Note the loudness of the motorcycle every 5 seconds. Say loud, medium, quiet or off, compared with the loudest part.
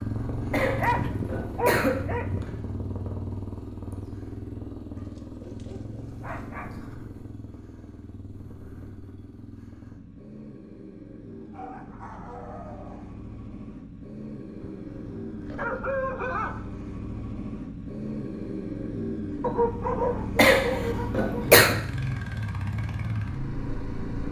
loud, medium, medium, loud, loud.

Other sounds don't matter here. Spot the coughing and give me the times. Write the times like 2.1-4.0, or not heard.
0.5-2.0, 20.4-21.8.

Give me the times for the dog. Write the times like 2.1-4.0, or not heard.
0.8-2.6, 5.0-6.7, 11.3-13.1, 14.6-16.6, 19.4-21.6.